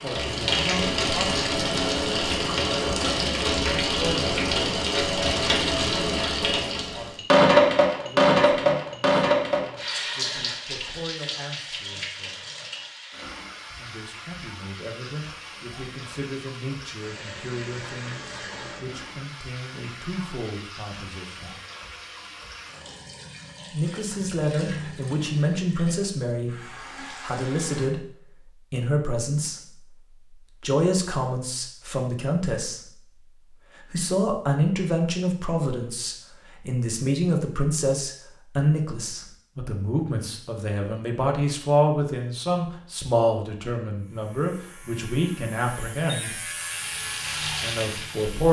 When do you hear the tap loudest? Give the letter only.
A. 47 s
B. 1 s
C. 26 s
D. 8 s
D.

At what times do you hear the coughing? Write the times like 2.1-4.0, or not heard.
not heard.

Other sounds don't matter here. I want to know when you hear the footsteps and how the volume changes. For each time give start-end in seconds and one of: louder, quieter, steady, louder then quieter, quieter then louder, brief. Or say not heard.
not heard.